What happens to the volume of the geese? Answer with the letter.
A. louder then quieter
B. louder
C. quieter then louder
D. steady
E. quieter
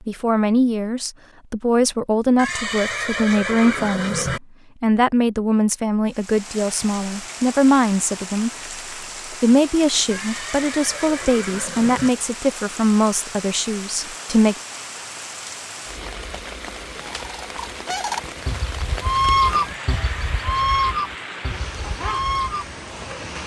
A.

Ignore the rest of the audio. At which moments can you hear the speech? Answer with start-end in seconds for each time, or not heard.
0.1-8.5, 9.3-14.6.